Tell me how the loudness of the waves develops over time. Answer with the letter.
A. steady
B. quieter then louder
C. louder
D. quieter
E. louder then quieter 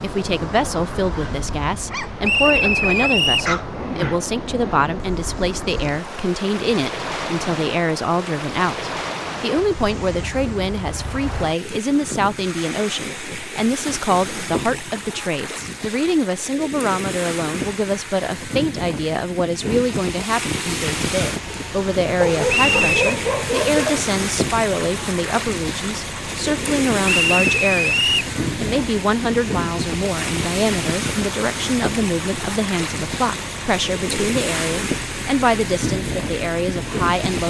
A.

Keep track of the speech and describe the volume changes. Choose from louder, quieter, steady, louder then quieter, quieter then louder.
steady.